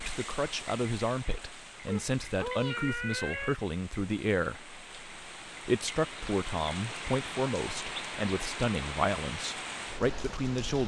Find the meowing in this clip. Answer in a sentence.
The meowing can be heard from 1.9 to 3.5 s.